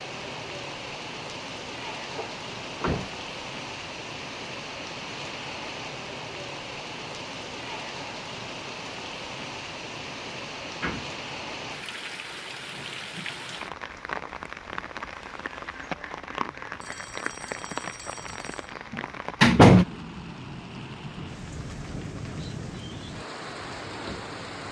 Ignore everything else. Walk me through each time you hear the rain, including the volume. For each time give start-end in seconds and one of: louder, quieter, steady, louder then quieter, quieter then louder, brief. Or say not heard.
0.0-24.6 steady.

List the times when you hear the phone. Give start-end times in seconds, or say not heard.
16.8-18.7.